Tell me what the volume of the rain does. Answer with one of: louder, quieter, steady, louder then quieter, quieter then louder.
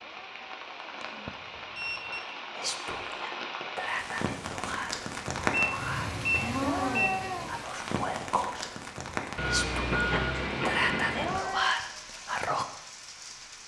louder then quieter.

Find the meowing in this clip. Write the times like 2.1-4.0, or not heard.
0.0-1.4, 6.6-7.5, 11.2-11.8.